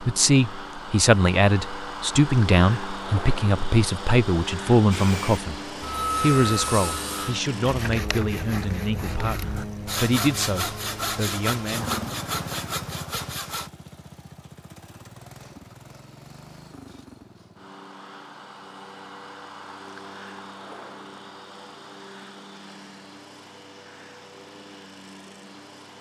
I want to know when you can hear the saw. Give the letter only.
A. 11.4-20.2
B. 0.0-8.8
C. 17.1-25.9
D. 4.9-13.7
D.